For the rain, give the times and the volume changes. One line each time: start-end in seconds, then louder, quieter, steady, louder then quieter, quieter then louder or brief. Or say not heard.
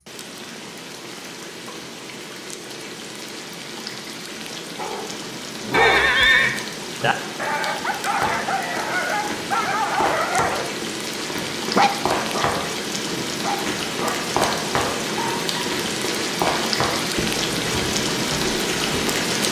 0.0-19.4 louder.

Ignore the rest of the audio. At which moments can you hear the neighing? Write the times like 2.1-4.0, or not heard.
5.7-6.5.